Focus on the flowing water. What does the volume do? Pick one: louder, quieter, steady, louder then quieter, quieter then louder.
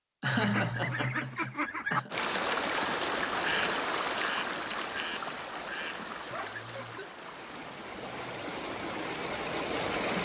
quieter then louder.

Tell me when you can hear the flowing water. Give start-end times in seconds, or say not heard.
2.1-10.2.